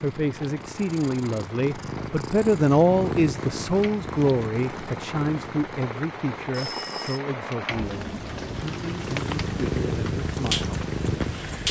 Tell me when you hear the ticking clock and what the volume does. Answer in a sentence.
The ticking clock can't be heard in this clip.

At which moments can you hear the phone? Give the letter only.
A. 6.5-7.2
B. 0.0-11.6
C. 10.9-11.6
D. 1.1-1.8
A.